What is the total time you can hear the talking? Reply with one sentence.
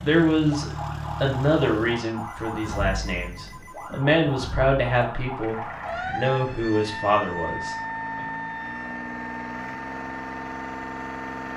The talking can be heard for 8 seconds in total.